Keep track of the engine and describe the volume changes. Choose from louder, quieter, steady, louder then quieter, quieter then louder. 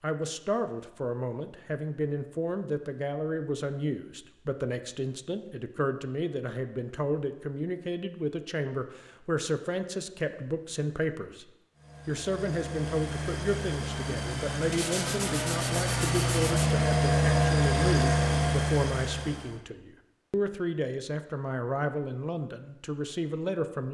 louder.